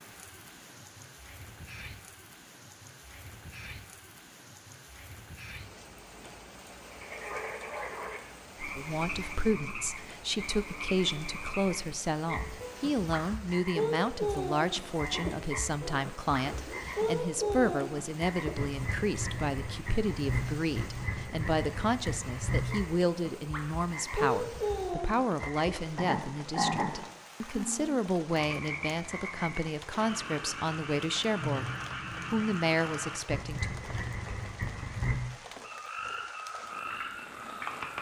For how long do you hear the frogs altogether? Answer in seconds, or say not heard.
31 s.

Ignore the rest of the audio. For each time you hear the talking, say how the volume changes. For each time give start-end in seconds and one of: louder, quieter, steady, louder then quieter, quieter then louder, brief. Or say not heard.
8.8-31.7 steady
32.3-33.8 brief.